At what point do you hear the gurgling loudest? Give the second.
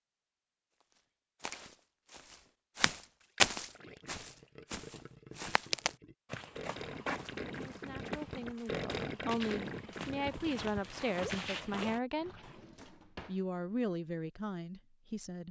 9 s.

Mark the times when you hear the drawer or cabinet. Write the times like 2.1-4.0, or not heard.
12.4-13.4.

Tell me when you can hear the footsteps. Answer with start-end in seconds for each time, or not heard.
0.9-12.0.